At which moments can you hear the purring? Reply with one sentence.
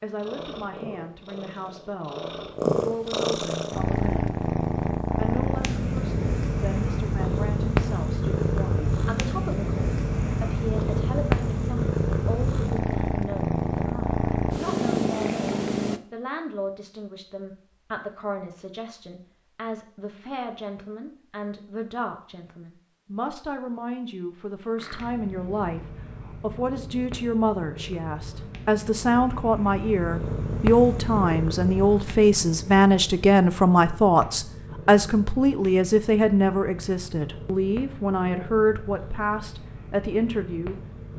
You can hear the purring from 0.0 to 16.0 s and from 24.8 to 41.1 s.